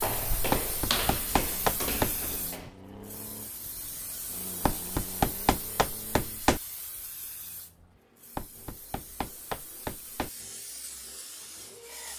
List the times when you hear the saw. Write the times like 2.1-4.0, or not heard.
not heard.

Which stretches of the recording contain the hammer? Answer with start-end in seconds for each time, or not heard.
0.5-2.1, 4.6-6.6, 8.3-10.3.